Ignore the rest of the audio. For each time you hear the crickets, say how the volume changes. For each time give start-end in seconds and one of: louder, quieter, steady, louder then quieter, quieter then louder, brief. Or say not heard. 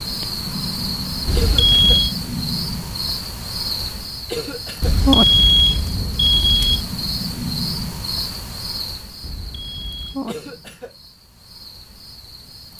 0.0-12.7 quieter.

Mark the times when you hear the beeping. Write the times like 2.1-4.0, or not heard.
1.2-2.1, 4.8-6.8, 9.2-10.2.